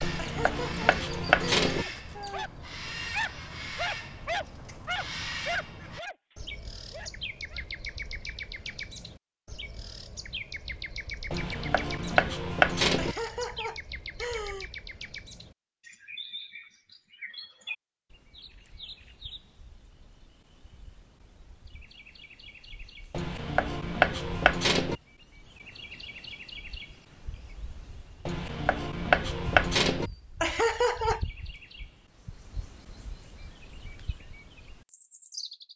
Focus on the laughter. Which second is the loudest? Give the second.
31 s.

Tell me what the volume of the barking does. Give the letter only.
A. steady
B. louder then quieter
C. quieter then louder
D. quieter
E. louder
D.